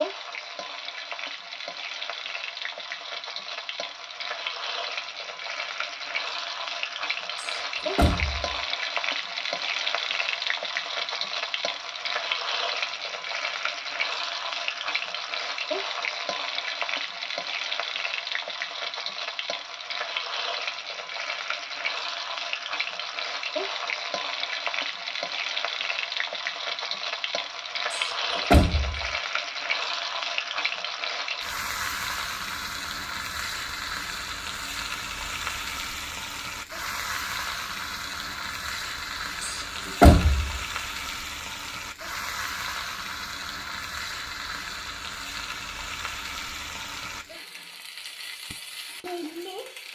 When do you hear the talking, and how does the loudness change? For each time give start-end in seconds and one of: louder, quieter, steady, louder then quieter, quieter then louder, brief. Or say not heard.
not heard.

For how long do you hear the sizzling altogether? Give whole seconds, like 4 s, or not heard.
50 s.